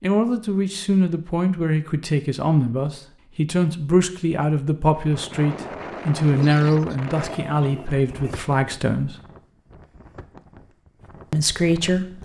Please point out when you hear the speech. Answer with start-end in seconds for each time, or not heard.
0.0-9.2, 11.3-12.1.